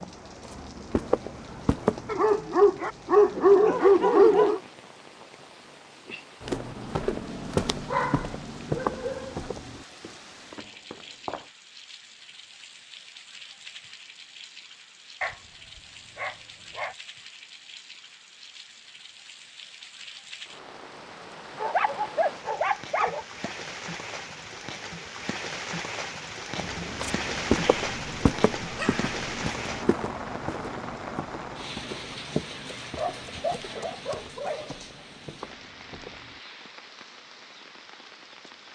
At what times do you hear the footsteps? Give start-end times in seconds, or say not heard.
0.0-2.2, 6.4-11.5, 26.6-36.4.